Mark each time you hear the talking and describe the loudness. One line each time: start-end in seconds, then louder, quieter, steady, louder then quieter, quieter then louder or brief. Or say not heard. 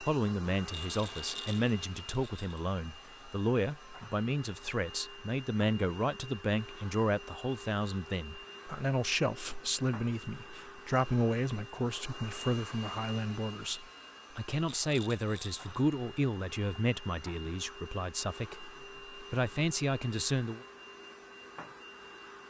0.0-20.6 steady.